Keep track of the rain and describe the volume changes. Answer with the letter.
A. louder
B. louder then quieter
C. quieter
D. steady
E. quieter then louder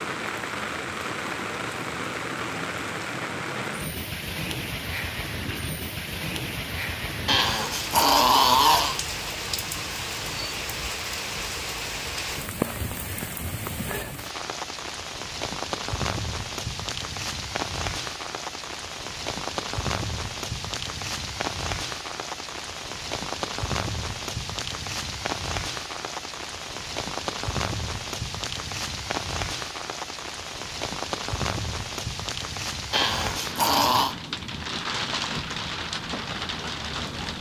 D.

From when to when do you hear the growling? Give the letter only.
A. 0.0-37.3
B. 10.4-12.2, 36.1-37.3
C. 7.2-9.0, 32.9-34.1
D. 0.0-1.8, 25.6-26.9
C.